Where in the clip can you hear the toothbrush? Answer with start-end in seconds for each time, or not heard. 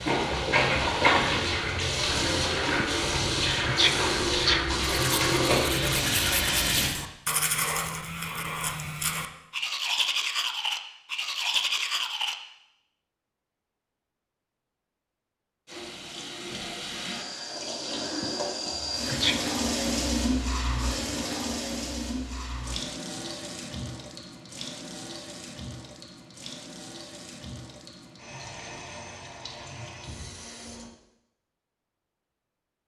4.9-12.3.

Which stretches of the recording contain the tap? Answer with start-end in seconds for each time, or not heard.
0.0-6.9, 15.7-30.9.